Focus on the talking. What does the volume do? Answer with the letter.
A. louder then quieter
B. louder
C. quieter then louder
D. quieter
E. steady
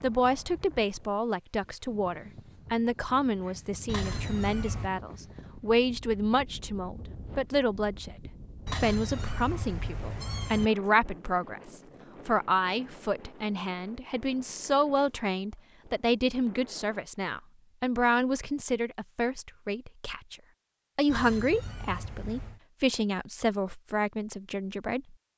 E.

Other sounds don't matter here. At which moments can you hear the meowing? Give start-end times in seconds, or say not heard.
3.9-4.9, 8.7-10.7, 21.1-22.6.